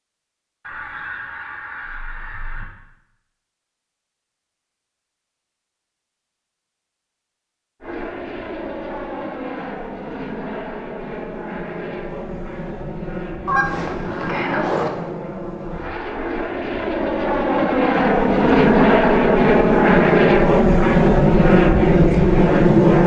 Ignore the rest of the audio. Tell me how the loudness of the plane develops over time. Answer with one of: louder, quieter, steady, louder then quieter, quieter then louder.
louder.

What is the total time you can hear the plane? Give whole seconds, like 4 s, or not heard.
15 s.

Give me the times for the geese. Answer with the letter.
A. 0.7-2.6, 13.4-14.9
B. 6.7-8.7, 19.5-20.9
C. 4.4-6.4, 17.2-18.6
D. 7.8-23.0
A.